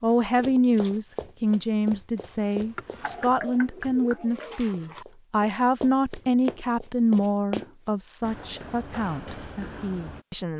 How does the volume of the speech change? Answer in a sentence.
The loudness of the speech goes down.